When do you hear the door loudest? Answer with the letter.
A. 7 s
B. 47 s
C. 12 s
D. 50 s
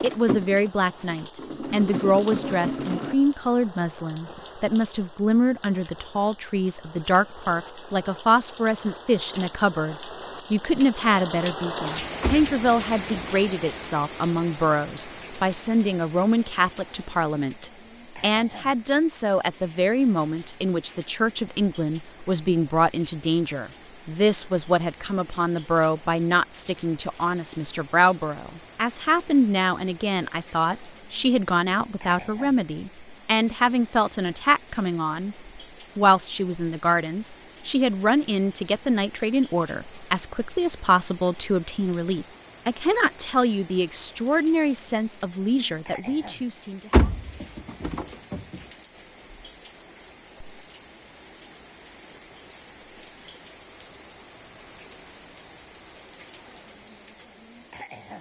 B.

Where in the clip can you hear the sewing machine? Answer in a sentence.
The sewing machine can be heard from 0.0 to 3.1 s.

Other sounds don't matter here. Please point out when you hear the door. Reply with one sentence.
The door can be heard from 12.2 to 13.3 s and from 46.9 to 48.6 s.